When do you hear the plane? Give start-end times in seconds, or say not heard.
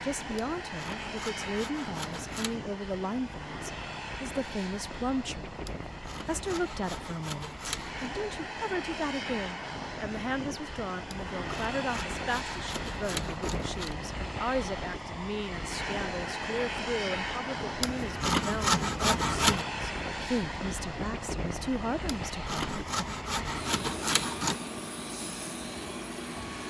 0.0-26.6.